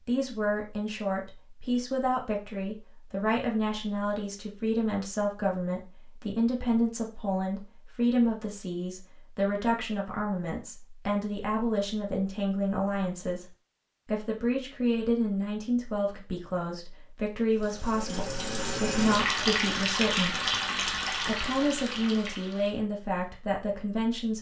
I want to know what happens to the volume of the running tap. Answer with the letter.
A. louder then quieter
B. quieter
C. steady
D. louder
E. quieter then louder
A.